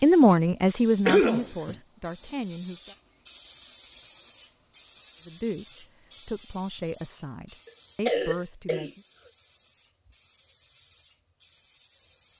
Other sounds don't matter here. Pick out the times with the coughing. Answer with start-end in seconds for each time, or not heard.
1.1-1.8, 8.1-8.9.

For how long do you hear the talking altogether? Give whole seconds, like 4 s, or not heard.
7 s.